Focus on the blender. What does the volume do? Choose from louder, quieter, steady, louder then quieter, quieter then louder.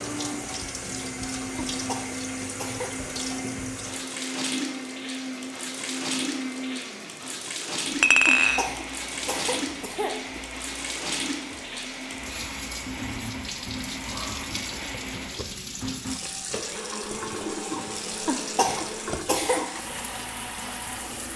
steady.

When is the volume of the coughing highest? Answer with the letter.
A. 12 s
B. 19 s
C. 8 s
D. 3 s
B.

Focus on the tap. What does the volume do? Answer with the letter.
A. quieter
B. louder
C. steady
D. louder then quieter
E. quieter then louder
C.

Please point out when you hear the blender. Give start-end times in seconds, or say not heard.
0.0-21.3.